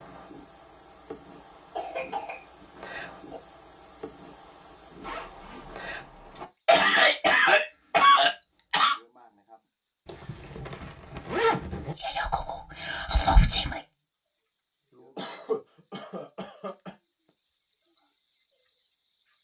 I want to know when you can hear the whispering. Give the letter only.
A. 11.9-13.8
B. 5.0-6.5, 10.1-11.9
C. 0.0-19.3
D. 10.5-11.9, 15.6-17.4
A.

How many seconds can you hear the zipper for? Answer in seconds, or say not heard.
3 s.